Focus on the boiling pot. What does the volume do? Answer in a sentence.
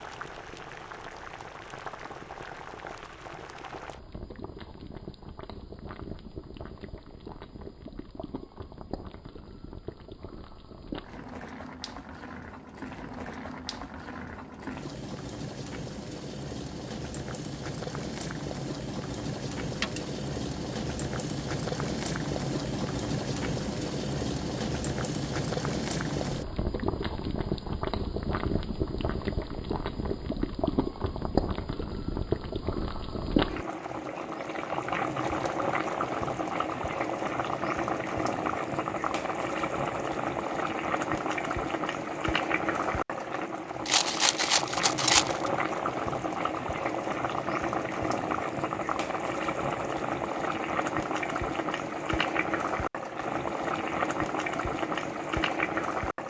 The volume of the boiling pot goes up.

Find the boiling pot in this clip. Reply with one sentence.
You can hear the boiling pot from 0.0 to 56.2 s.